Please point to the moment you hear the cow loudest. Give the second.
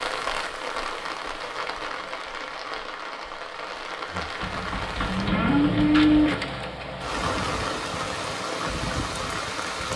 6 s.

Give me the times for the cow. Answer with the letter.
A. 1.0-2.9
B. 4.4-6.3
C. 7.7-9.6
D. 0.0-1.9
B.